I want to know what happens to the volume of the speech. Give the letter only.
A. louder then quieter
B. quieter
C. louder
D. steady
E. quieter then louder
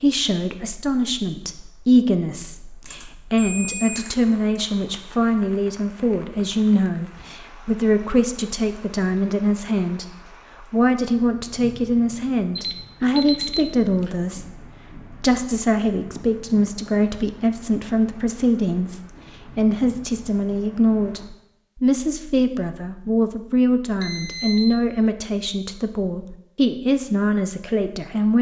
D.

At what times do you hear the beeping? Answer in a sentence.
The beeping can be heard from 2.9 to 4.6 s, from 12.6 to 14.1 s and from 24.0 to 24.8 s.